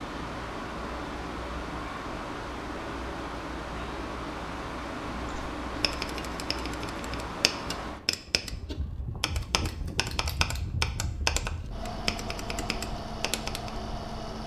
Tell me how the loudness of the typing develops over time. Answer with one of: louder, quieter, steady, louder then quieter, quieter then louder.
louder then quieter.